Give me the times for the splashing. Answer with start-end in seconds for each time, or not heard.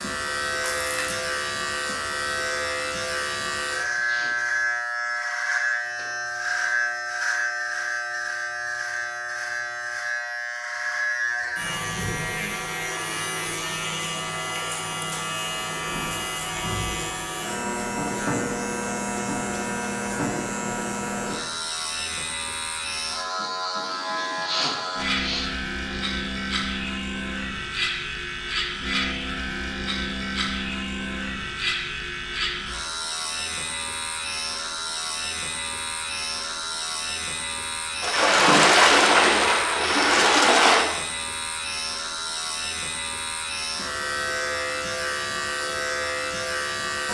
0.6-1.2, 38.0-40.9.